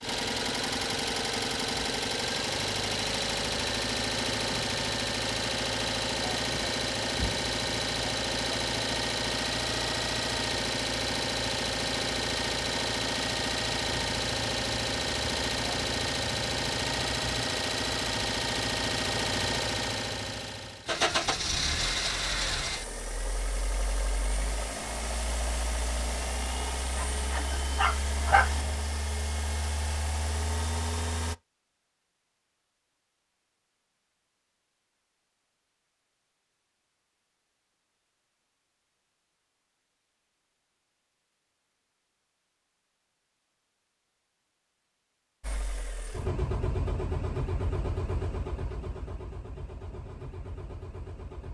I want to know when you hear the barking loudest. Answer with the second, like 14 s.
28 s.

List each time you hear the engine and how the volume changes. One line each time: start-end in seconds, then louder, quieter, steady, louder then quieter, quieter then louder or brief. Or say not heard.
0.0-31.4 quieter
45.4-51.4 quieter.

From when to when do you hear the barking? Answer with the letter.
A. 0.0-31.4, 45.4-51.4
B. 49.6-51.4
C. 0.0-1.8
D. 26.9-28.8
D.